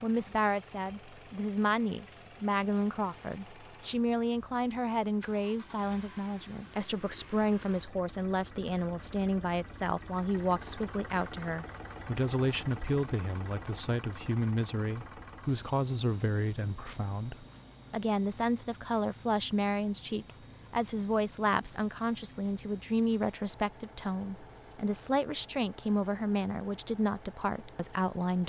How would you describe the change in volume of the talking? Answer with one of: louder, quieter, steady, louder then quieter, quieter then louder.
steady.